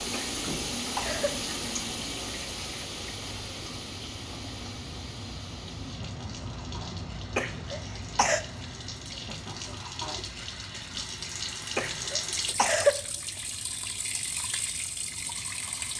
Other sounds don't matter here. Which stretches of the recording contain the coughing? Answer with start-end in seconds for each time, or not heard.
0.1-1.3, 7.3-8.4, 11.8-12.9.